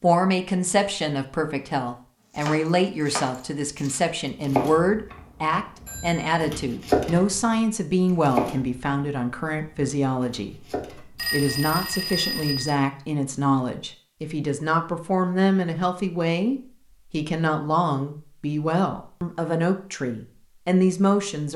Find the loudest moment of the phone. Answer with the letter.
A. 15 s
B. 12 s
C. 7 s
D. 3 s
B.